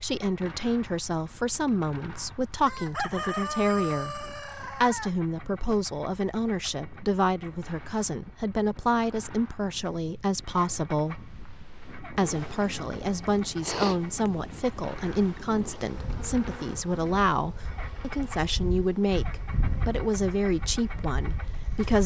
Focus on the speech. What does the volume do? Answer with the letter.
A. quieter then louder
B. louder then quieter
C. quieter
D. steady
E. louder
D.